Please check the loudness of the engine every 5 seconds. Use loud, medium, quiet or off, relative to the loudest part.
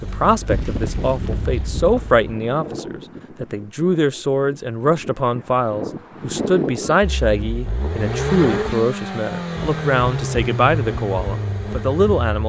medium, loud, loud.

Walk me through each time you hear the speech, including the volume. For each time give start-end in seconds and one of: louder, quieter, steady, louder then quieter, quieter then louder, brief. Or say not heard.
0.0-12.4 steady.